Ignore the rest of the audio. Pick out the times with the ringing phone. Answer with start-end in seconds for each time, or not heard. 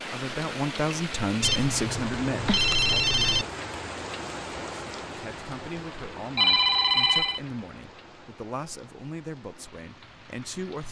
1.4-3.5, 6.3-7.4.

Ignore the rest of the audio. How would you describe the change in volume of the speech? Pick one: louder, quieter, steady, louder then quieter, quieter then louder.
quieter.